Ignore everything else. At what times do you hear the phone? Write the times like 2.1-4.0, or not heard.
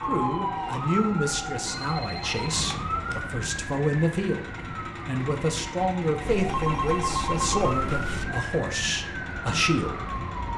1.6-3.3, 6.2-8.2.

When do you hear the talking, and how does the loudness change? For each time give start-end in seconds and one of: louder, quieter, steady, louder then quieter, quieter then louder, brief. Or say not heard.
0.1-10.1 steady.